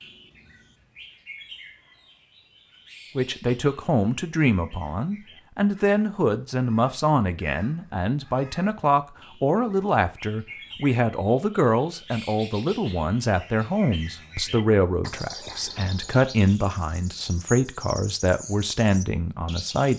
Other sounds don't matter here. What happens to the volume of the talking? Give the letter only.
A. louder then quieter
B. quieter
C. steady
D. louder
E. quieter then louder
C.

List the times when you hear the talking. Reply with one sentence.
You can hear the talking from 3.1 to 19.9 s.